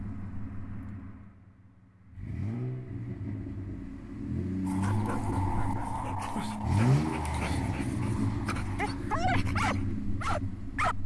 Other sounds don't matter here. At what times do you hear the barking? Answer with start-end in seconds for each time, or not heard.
4.7-10.9.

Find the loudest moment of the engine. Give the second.
7 s.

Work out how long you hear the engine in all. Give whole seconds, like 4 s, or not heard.
11 s.